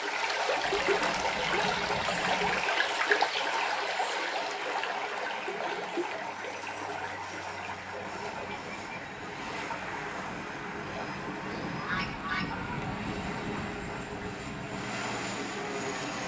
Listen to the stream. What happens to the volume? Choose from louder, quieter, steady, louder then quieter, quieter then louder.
quieter.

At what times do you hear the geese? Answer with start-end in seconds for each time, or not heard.
0.6-2.6, 11.3-12.8.